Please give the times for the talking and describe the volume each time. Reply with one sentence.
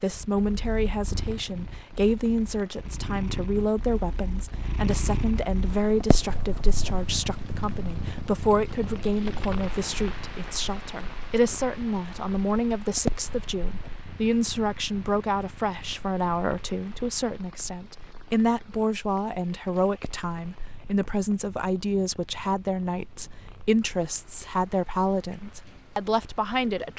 You can hear the talking from 0.0 to 26.9 s, at a steady volume.